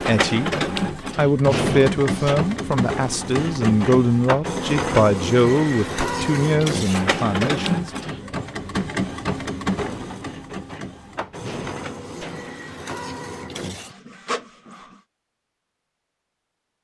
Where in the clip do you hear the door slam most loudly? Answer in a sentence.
The loudest moment of the door slam is at 2 seconds.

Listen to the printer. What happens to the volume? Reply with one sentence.
The volume of the printer goes down.